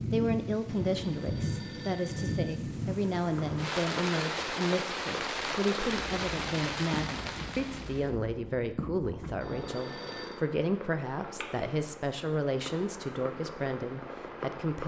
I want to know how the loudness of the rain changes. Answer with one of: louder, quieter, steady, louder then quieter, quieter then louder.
steady.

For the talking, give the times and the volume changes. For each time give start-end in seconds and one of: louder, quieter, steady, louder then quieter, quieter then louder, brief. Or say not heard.
0.1-14.8 steady.